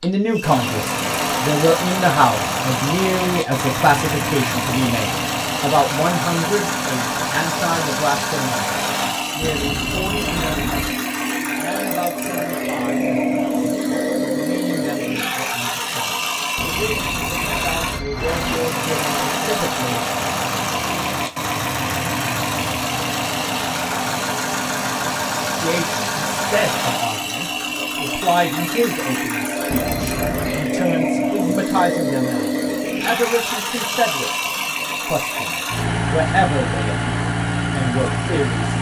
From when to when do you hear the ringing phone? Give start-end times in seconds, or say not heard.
9.4-11.0, 16.6-18.6, 29.7-30.7.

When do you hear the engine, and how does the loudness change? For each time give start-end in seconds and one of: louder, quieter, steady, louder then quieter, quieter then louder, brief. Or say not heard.
0.0-38.7 steady.